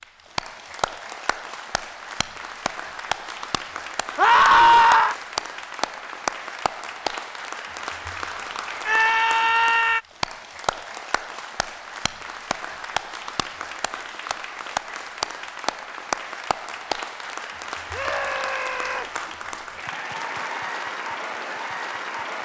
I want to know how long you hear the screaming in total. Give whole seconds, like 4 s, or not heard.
3 s.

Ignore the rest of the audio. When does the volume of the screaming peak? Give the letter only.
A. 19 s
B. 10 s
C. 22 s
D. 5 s
D.